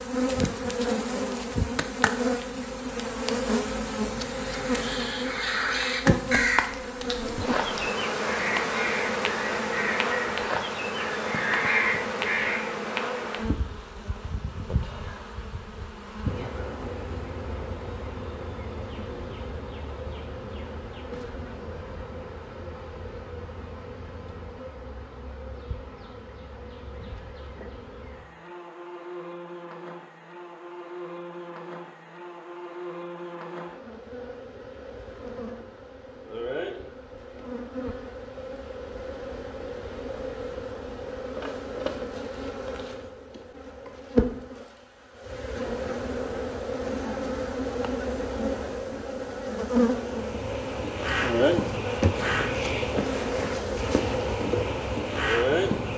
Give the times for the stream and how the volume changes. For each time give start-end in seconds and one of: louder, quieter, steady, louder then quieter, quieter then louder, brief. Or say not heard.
not heard.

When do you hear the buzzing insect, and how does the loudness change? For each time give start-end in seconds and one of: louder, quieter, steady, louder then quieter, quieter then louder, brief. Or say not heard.
0.0-55.9 quieter then louder.